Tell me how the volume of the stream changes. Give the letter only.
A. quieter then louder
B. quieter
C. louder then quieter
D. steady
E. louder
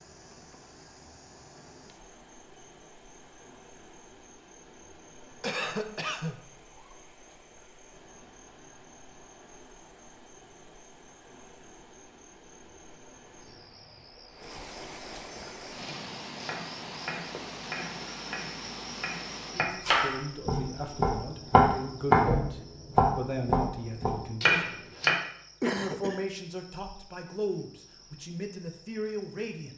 E.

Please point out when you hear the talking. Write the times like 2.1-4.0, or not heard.
19.5-24.7, 25.7-29.7.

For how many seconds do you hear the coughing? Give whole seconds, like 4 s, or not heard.
2 s.